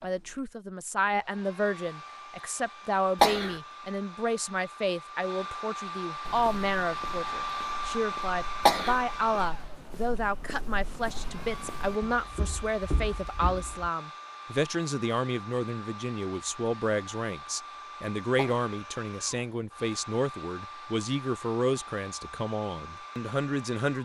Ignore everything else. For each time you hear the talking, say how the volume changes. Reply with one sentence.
You can hear the talking from 0.0 to 23.9 s, at a steady volume.